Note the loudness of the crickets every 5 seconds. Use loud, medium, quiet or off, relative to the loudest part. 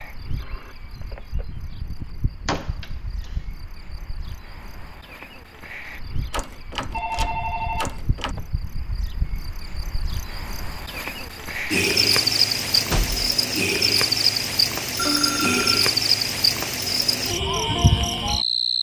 quiet, quiet, loud, loud.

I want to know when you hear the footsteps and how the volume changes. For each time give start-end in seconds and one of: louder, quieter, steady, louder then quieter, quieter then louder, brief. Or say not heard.
not heard.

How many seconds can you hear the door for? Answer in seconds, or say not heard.
3 s.